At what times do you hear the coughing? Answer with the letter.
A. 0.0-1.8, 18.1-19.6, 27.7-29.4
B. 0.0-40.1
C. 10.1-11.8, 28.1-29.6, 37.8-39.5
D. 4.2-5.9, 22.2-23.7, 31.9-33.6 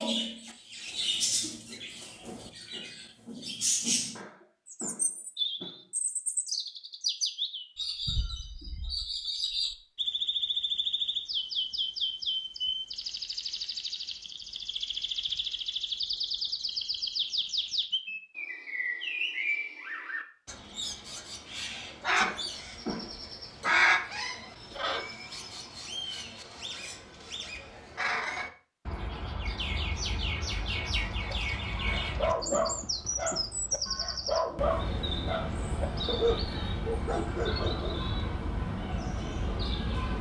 D.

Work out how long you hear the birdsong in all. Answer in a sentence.
The birdsong can be heard for 40 seconds in total.